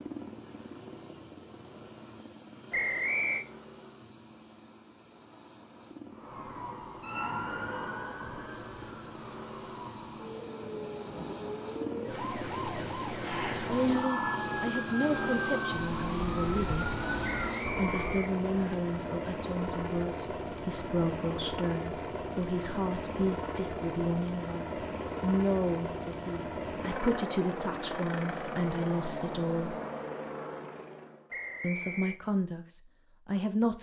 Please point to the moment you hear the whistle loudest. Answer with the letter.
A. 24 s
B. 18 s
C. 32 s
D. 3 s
D.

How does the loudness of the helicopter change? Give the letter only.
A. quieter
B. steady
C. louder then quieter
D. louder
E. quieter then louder
D.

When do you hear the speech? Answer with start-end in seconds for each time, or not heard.
13.7-16.9, 17.8-29.8, 31.6-33.7.